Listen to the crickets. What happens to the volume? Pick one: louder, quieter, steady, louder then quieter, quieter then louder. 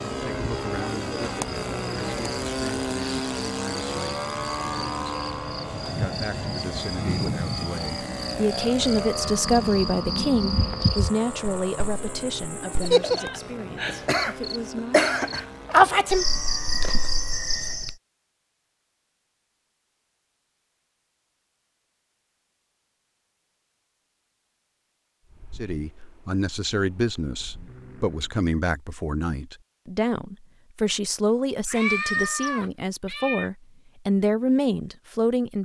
louder.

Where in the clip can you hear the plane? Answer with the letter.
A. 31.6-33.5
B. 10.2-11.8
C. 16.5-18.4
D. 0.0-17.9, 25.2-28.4
D.